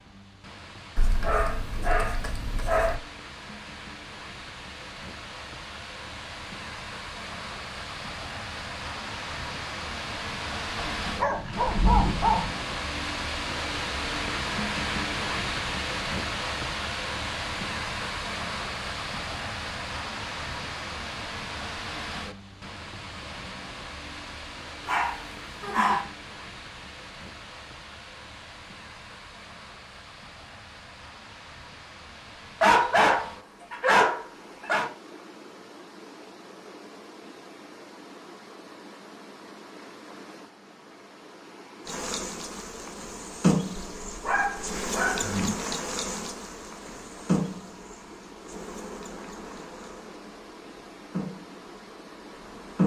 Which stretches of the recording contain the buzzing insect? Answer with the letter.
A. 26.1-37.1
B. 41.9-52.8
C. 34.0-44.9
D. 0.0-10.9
B.